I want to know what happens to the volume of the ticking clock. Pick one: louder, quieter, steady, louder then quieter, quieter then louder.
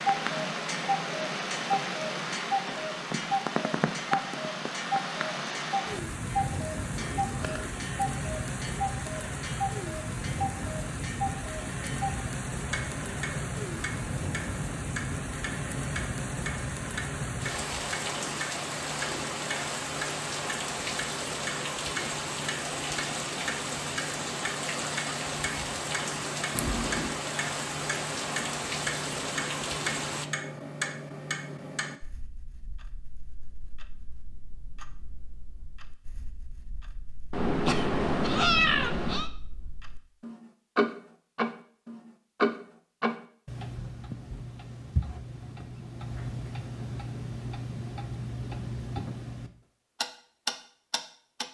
quieter then louder.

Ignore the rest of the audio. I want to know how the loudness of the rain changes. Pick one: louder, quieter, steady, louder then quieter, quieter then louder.
steady.